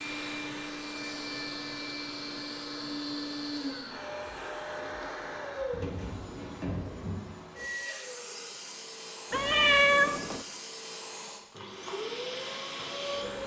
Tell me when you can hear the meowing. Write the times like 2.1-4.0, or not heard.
9.3-10.4.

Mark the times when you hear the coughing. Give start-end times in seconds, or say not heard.
not heard.